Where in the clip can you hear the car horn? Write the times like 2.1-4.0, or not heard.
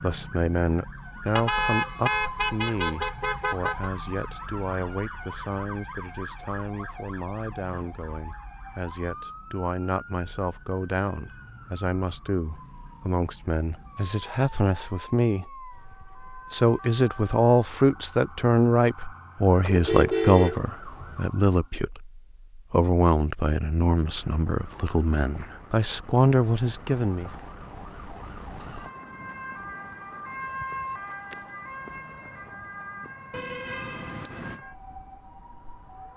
1.4-3.9, 19.6-21.2, 33.3-34.6.